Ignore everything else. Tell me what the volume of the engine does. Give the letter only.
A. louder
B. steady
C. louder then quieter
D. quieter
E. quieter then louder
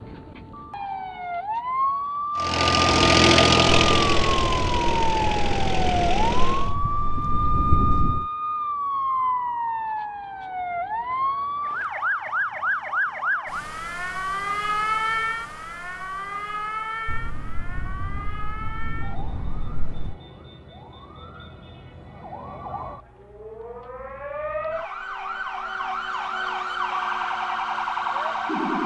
D.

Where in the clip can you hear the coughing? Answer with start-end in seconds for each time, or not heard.
not heard.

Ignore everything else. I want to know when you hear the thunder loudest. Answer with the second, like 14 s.
8 s.